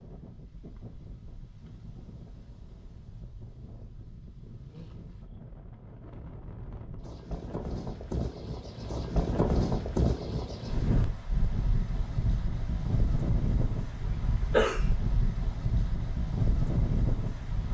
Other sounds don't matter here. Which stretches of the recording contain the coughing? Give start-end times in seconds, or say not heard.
14.0-14.8.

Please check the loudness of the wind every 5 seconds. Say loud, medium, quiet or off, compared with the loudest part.
quiet, loud, loud, loud.